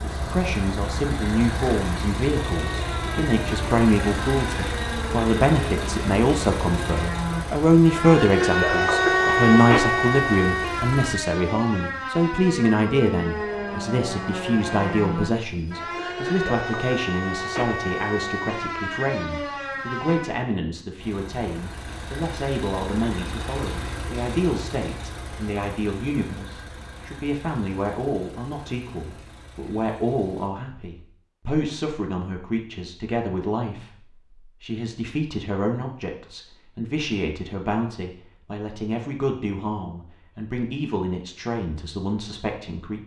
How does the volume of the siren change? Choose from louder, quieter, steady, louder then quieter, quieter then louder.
louder then quieter.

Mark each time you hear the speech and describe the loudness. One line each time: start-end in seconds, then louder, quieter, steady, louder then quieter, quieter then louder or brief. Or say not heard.
0.0-43.0 quieter.